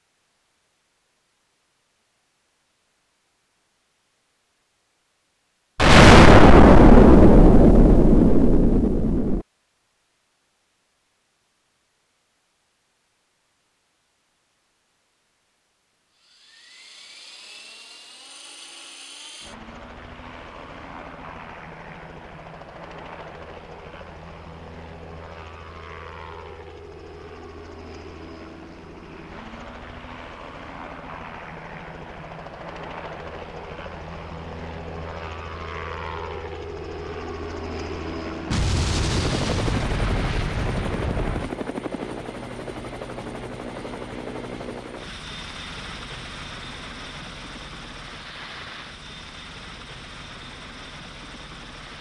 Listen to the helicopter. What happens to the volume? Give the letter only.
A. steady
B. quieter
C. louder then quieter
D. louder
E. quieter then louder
C.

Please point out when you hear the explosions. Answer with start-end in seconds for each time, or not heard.
5.8-9.4, 38.5-41.5.